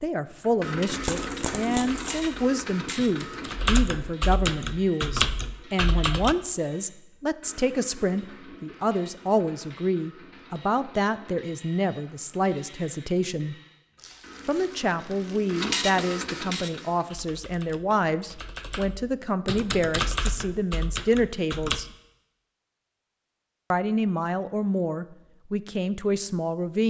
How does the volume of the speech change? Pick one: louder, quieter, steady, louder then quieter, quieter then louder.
steady.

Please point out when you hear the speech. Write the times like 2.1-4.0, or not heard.
0.0-13.6, 14.4-21.9, 23.7-26.8.